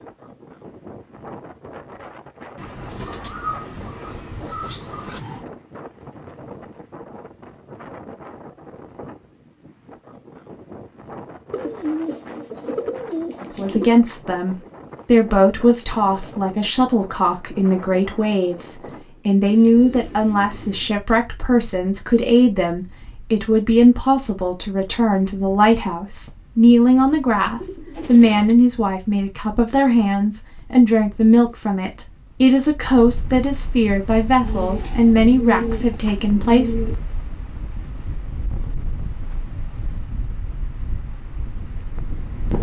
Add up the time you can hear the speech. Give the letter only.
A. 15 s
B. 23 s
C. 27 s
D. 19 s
B.